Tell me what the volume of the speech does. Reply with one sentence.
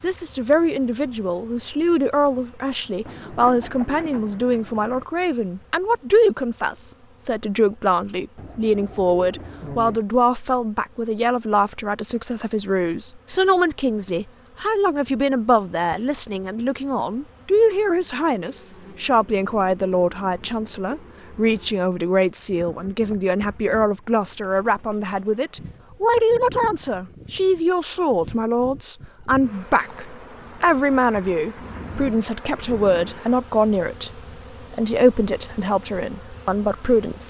The volume of the speech stays about the same.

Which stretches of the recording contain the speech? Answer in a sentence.
You can hear the speech from 0.0 to 37.2 s.